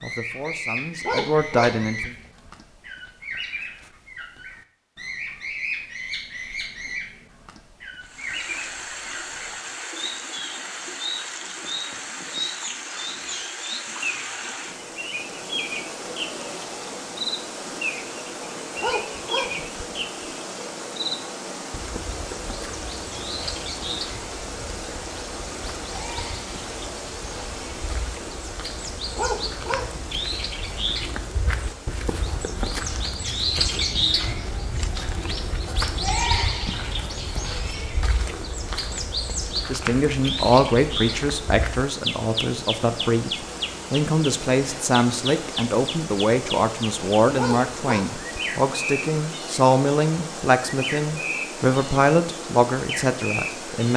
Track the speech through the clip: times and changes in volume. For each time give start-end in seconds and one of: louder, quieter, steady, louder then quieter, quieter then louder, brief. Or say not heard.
0.0-2.1 brief
39.6-53.9 steady.